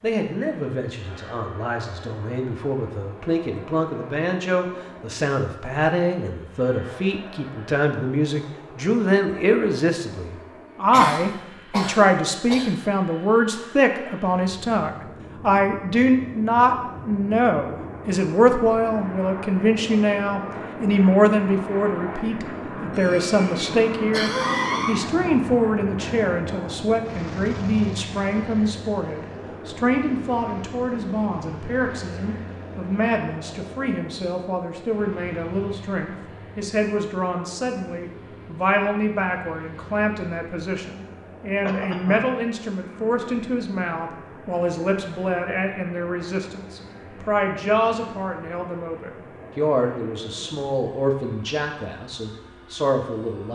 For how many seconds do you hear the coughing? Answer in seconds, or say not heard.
4 s.